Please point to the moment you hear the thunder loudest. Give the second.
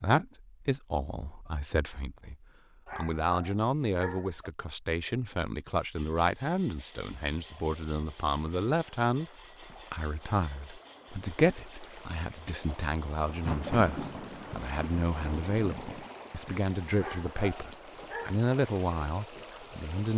14 s.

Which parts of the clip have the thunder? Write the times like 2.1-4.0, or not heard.
13.2-16.1.